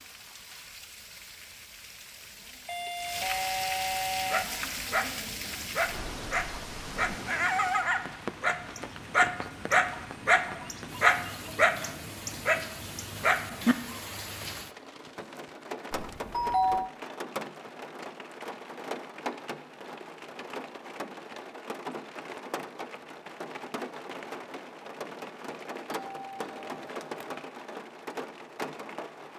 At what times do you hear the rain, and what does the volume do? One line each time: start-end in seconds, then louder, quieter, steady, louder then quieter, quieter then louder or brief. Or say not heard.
0.0-29.3 steady.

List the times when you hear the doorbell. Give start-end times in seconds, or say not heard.
2.6-4.5, 15.9-16.9, 25.9-27.4.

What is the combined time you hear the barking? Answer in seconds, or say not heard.
10 s.